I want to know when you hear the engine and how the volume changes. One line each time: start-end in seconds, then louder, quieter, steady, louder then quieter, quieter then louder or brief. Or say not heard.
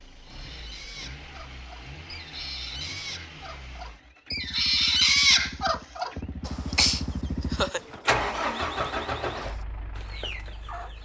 0.0-10.9 louder.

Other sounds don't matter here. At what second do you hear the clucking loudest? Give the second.
5 s.